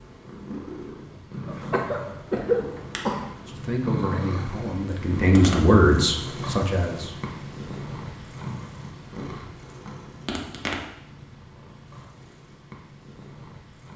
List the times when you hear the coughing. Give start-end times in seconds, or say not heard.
1.4-3.4.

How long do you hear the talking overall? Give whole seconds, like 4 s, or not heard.
4 s.